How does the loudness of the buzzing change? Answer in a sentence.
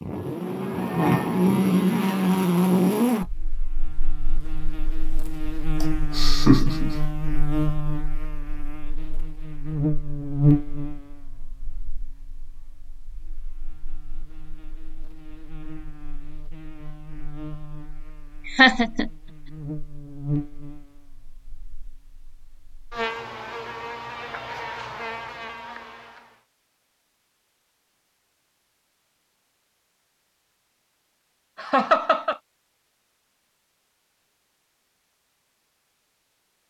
The loudness of the buzzing goes down, then up.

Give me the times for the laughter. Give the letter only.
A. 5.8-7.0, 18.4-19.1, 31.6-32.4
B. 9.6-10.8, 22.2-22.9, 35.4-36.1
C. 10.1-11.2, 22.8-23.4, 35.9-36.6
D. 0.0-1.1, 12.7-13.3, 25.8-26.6
A.